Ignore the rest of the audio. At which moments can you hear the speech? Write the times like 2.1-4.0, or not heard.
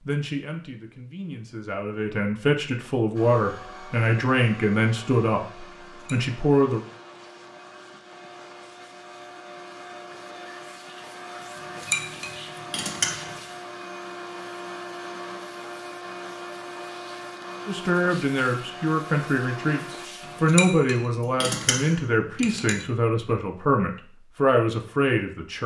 0.1-6.8, 17.6-25.6.